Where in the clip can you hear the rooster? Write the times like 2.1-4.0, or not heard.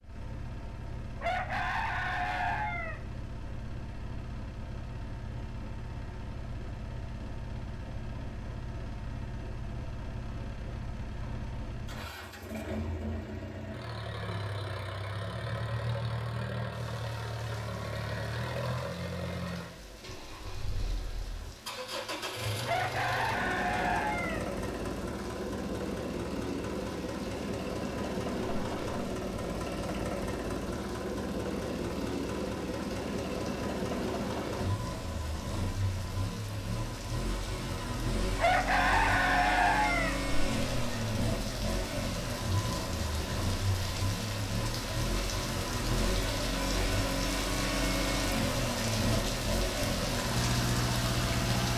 1.2-3.0, 22.6-24.4, 38.4-40.1.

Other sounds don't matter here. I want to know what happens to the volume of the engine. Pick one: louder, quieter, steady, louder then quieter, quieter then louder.
louder.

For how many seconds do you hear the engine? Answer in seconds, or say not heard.
52 s.